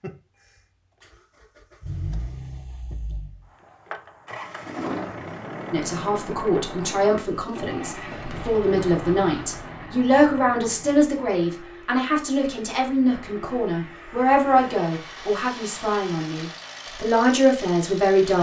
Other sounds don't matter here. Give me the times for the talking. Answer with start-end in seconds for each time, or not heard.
5.7-18.3.